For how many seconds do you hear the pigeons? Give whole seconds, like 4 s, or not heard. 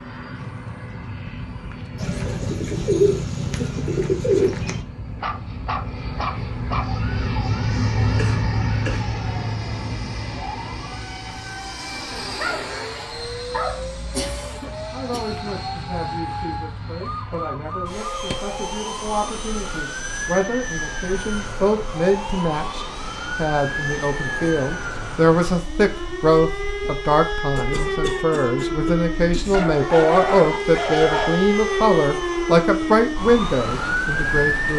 3 s.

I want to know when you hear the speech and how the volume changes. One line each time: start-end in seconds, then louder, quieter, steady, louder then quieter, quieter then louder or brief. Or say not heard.
14.9-34.7 louder.